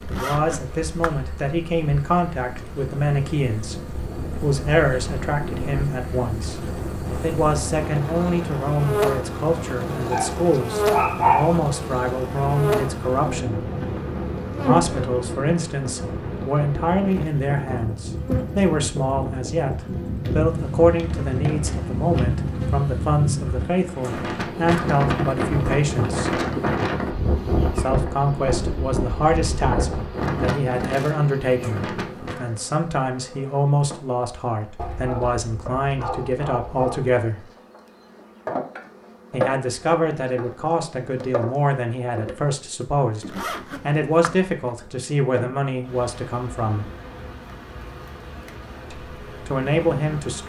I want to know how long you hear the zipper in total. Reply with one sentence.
You can hear the zipper for 2 seconds altogether.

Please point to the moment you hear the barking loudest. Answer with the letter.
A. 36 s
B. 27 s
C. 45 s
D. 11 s
D.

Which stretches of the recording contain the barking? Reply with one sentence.
You can hear the barking from 10.1 to 11.6 s and from 34.8 to 37.2 s.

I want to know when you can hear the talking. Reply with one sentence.
You can hear the talking from 0.1 to 13.7 s, from 14.6 to 26.4 s, from 27.8 to 37.5 s, from 39.3 to 46.9 s and from 48.9 to 50.4 s.